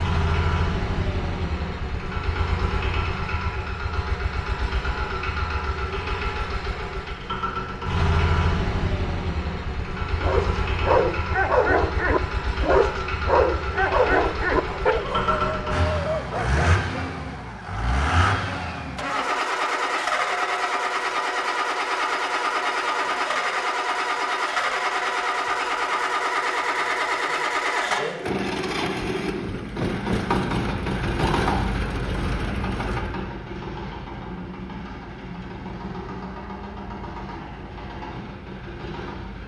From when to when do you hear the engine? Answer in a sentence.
The engine can be heard from 0.0 to 39.4 s.